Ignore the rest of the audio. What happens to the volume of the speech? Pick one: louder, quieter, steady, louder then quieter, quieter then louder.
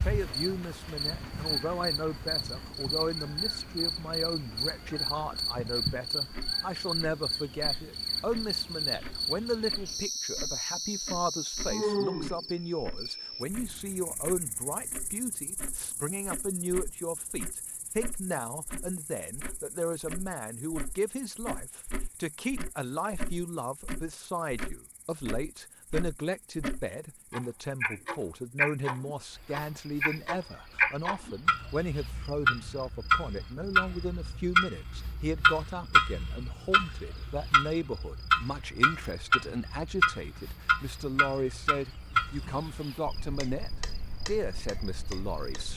steady.